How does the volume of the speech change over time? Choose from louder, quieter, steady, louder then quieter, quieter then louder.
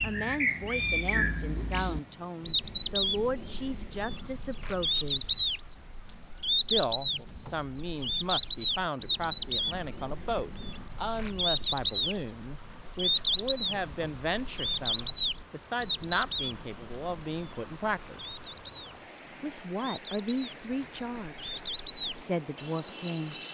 steady.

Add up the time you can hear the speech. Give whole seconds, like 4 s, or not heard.
21 s.